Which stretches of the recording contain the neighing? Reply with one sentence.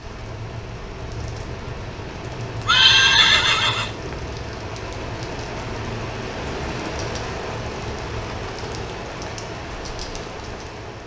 The neighing can be heard from 2.6 to 4.2 s.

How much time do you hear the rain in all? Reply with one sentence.
You can hear the rain for 11 seconds altogether.